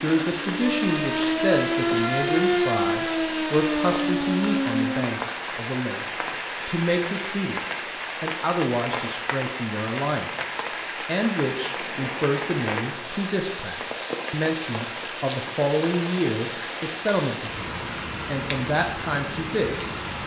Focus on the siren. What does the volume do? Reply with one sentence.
The volume of the siren stays about the same.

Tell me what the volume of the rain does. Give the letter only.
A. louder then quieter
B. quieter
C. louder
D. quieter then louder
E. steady
E.